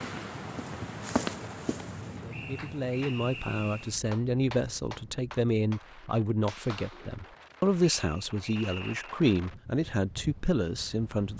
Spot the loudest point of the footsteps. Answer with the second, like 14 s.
1 s.